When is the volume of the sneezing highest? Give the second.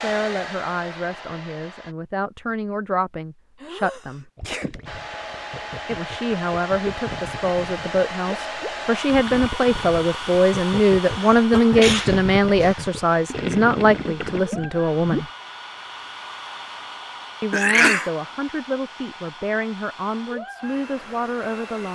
18 s.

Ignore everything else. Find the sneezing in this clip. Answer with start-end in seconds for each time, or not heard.
3.6-4.8, 11.1-12.8, 17.5-18.1.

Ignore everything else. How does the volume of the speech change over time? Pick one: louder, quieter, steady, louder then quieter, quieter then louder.
louder then quieter.